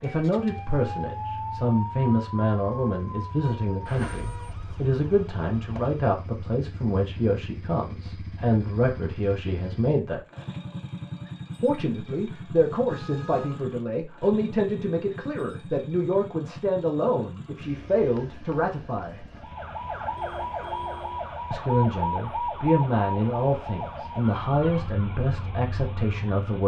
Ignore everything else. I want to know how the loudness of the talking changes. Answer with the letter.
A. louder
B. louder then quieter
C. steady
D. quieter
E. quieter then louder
C.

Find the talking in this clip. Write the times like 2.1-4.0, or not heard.
0.0-10.2, 11.6-19.2, 21.5-26.6.